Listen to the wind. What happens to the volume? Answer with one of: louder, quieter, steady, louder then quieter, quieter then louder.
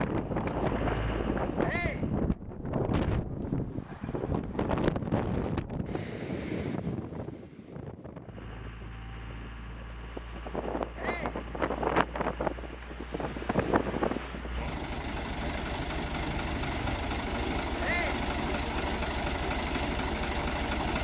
quieter then louder.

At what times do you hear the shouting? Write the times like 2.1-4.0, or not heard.
1.6-2.1, 10.9-11.4, 17.8-18.2.